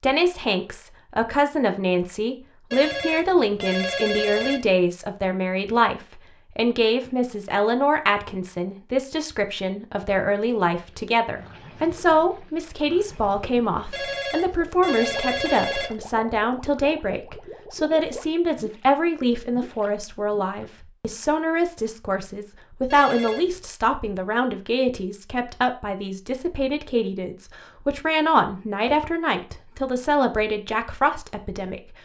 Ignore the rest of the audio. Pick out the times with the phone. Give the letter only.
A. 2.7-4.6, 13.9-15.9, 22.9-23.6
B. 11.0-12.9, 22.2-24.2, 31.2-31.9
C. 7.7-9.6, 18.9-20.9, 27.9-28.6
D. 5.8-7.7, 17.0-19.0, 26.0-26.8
A.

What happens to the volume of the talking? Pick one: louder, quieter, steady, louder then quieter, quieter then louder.
steady.